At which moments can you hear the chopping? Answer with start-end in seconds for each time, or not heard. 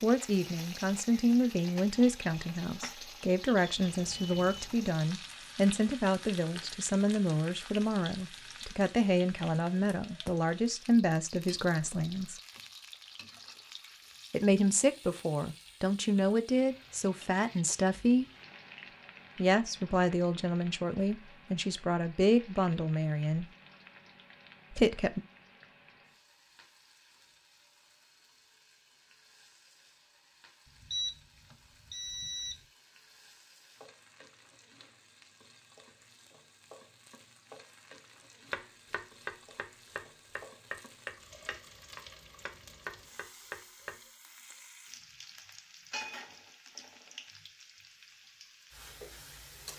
38.5-44.0.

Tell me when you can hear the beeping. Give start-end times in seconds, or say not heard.
3.8-4.8, 30.6-32.6.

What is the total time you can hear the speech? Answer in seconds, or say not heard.
21 s.